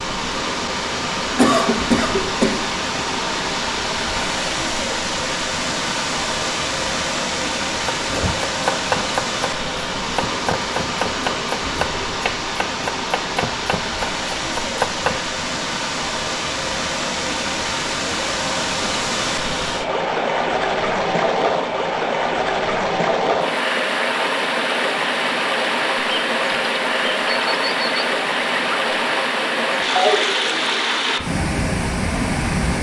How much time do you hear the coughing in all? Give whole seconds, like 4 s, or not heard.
2 s.